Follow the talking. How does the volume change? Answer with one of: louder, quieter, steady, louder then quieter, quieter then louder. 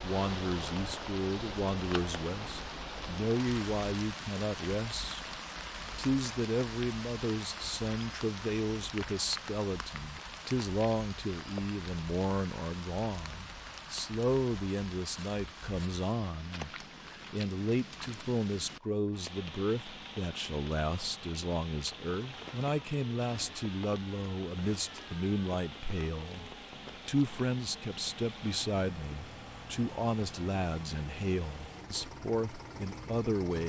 steady.